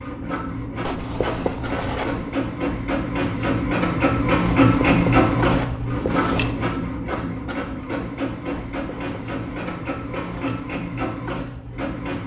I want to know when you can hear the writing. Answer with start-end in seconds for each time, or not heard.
0.8-2.3, 4.5-6.5, 8.5-10.6.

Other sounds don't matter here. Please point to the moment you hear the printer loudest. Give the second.
5 s.